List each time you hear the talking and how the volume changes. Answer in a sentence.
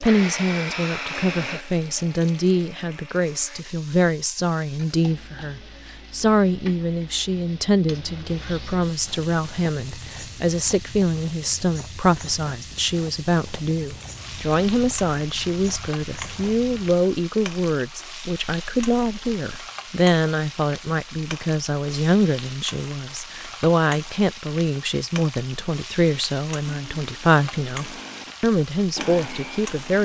You can hear the talking from 0.0 to 30.0 s, at a steady volume.